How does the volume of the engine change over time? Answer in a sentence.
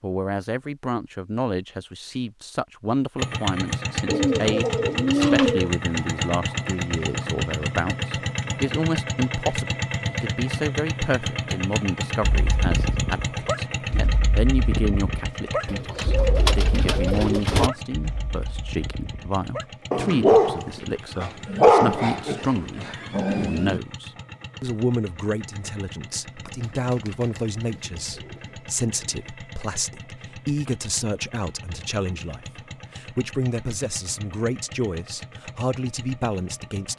The volume of the engine goes down.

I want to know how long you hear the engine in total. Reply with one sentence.
The engine can be heard for 34 seconds in total.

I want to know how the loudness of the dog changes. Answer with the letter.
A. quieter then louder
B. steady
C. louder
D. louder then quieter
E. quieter
A.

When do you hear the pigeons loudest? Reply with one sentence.
The volume of the pigeons peaks at 5 seconds.